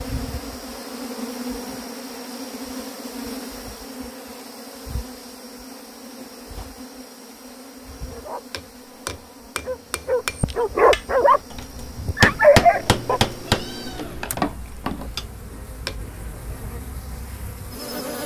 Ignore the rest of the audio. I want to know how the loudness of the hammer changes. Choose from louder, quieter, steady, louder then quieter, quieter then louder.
louder then quieter.